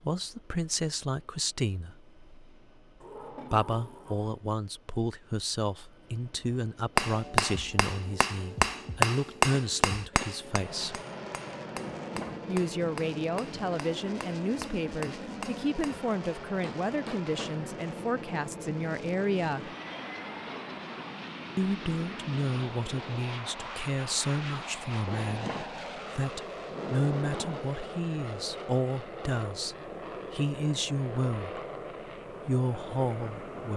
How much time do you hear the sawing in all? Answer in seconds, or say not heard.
not heard.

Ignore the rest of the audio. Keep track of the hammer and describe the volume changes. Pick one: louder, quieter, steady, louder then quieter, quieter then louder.
quieter.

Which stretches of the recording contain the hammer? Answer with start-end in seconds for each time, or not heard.
7.0-17.6.